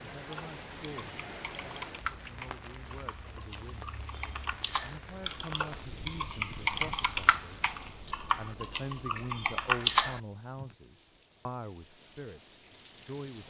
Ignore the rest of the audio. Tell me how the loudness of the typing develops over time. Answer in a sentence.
The loudness of the typing goes up.